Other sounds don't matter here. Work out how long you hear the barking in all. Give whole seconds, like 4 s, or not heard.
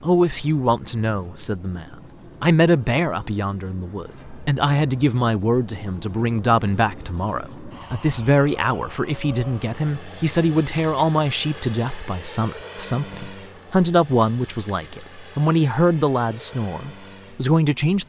not heard.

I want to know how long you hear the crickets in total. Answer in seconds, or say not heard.
not heard.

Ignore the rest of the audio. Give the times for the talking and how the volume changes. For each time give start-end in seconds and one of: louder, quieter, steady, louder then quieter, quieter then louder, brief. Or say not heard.
0.0-18.0 steady.